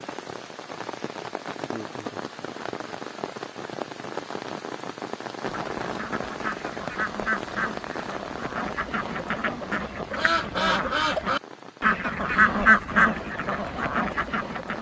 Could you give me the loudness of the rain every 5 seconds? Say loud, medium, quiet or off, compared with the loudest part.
loud, loud, medium.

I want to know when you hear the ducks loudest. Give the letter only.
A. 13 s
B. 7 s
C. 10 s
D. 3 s
A.